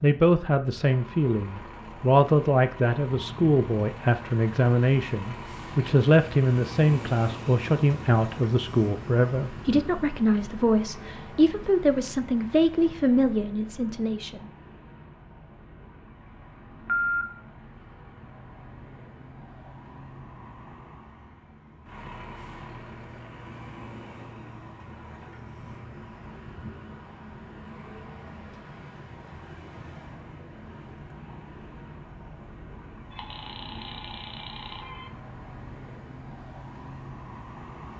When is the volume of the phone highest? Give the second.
17 s.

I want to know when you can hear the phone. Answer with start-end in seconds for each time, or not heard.
16.7-17.2, 33.1-35.1.